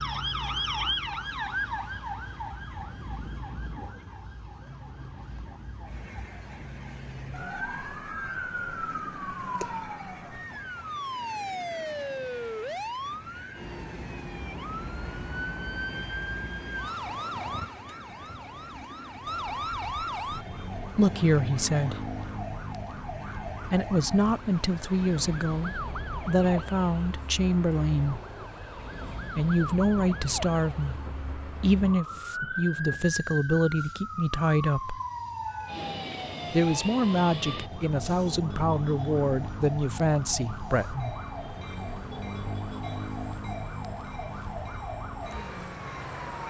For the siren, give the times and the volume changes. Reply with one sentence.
The siren can be heard from 0.0 to 46.4 s, at a steady volume.